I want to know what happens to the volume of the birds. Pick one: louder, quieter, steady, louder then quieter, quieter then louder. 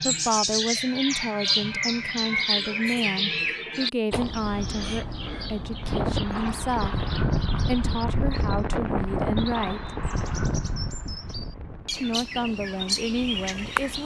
quieter then louder.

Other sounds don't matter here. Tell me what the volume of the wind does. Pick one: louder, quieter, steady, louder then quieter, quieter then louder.
quieter.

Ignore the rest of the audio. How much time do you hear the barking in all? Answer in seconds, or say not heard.
not heard.